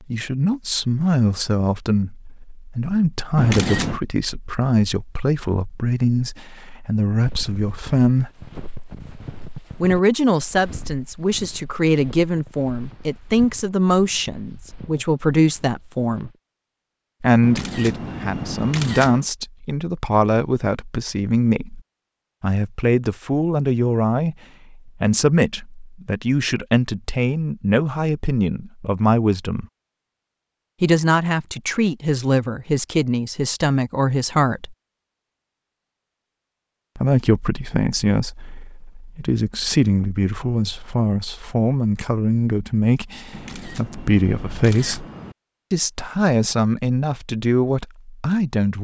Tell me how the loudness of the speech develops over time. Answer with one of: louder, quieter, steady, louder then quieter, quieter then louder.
steady.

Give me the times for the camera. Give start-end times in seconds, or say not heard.
3.4-4.0, 17.4-19.2, 43.3-45.4.